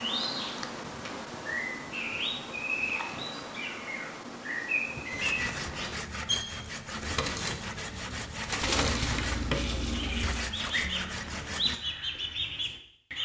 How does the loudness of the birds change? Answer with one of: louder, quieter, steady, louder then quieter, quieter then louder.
steady.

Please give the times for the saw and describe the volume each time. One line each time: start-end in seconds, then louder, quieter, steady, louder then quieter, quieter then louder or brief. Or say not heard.
5.1-11.8 steady.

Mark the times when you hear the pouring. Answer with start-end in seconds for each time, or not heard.
2.8-3.3, 8.6-10.4.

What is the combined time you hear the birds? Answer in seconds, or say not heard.
13 s.